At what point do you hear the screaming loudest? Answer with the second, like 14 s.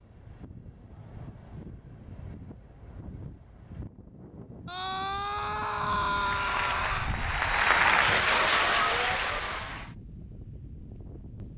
6 s.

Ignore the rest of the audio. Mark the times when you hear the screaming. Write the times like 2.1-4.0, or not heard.
4.7-7.2.